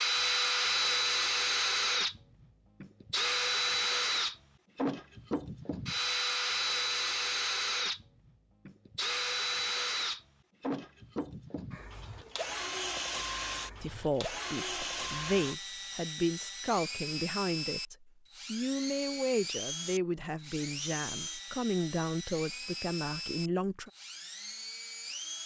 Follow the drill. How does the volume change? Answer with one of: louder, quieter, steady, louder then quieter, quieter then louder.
quieter.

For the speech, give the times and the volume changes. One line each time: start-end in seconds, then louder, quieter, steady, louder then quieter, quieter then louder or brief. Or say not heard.
13.8-23.9 steady.